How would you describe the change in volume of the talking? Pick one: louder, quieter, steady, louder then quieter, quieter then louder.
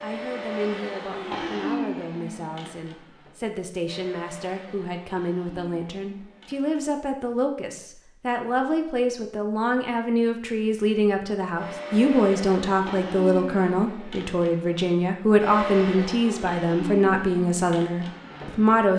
louder.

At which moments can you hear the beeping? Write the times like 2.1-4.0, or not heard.
not heard.